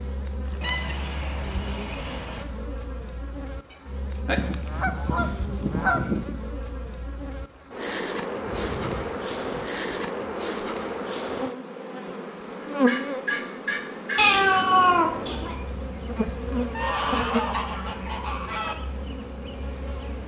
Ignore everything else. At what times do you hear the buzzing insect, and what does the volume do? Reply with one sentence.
You can hear the buzzing insect from 0.0 to 20.2 s, getting louder.